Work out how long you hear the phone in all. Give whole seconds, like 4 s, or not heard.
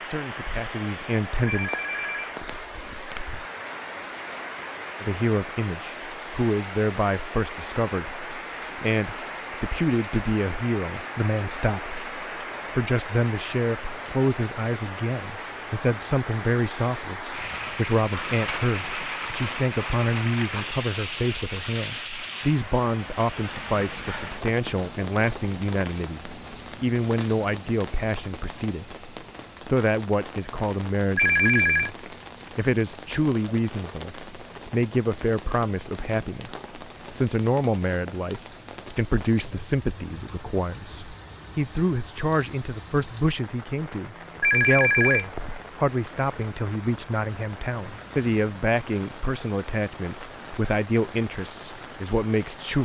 4 s.